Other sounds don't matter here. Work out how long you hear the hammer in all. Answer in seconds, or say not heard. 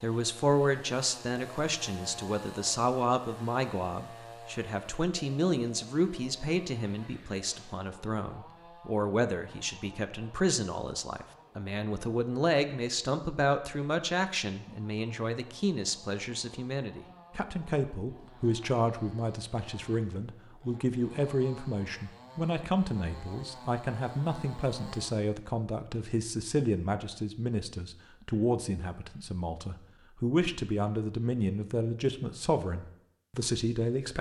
not heard.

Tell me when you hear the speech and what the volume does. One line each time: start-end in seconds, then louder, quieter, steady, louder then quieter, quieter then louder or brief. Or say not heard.
0.0-34.1 steady.